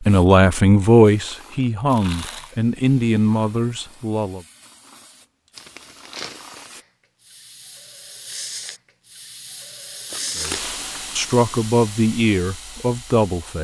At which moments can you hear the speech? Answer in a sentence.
You can hear the speech from 0.1 to 4.4 s and from 10.3 to 13.5 s.